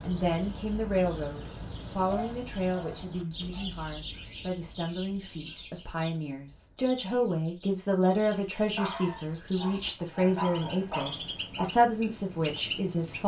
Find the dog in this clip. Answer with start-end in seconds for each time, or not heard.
2.0-3.7, 8.8-11.7.